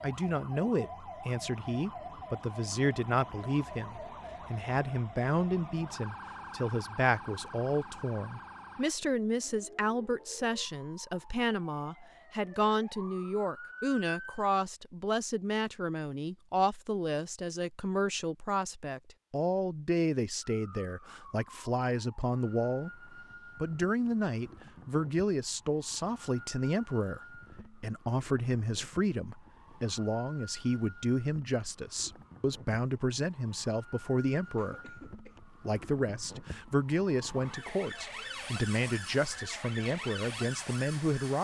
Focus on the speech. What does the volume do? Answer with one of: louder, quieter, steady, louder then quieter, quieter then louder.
steady.